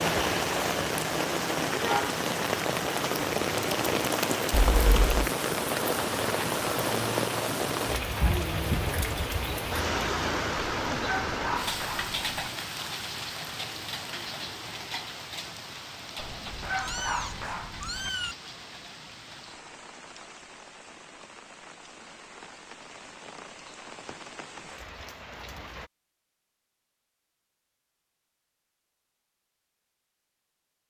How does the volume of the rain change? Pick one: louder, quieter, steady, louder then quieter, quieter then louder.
quieter.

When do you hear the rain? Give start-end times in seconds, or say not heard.
0.0-25.9.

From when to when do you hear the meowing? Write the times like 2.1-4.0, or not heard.
4.5-5.2, 16.5-18.4.